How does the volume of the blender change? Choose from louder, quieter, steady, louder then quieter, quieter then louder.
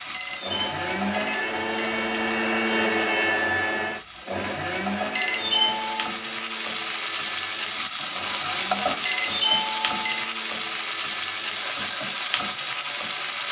quieter.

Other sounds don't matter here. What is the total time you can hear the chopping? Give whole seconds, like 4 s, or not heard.
not heard.